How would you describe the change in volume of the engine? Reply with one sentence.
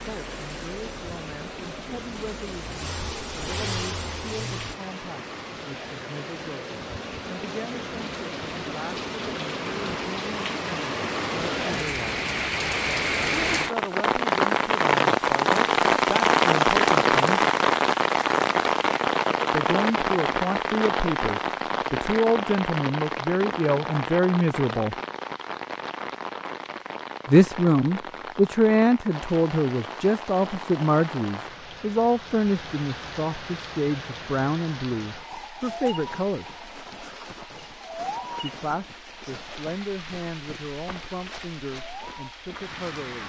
The loudness of the engine goes down, then up.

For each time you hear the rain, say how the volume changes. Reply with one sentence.
The rain can be heard from 0.0 to 43.2 s, getting louder then quieter.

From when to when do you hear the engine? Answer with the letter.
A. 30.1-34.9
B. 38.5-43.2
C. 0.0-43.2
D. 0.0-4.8
D.